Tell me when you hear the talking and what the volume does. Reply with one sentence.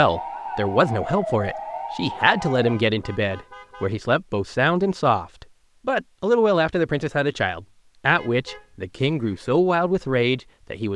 The talking can be heard from 0.0 to 10.9 s, at a steady volume.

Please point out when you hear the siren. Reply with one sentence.
The siren can be heard from 0.0 to 2.8 s.